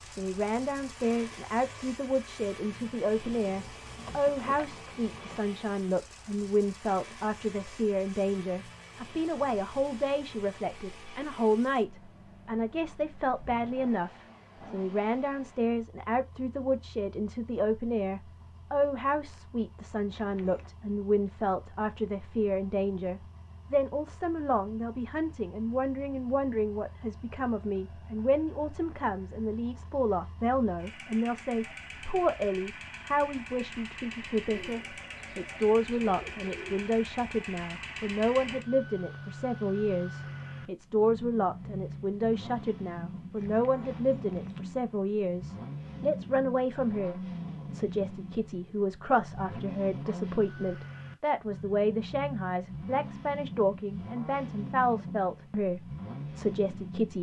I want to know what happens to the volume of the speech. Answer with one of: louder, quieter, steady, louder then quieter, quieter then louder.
steady.